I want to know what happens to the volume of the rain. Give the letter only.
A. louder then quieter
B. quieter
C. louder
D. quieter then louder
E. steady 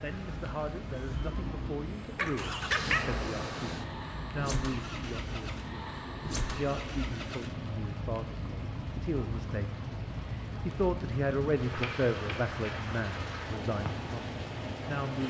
E.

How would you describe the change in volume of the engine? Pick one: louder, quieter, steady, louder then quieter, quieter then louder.
steady.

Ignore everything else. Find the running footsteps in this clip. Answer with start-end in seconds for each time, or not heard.
not heard.